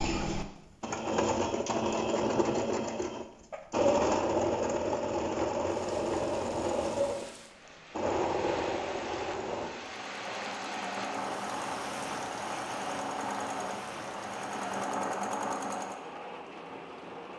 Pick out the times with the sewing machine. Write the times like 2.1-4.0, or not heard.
0.0-16.0.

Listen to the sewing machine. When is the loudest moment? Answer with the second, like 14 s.
4 s.